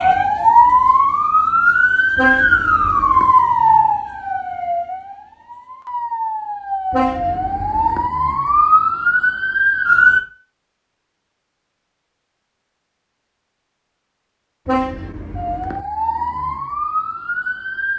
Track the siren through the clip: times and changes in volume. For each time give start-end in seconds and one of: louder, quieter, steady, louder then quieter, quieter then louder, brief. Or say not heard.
0.0-10.2 quieter then louder
15.3-17.9 brief.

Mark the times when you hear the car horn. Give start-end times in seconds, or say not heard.
2.1-3.4, 6.9-8.1, 14.7-15.8.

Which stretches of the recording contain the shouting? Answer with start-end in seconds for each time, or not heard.
not heard.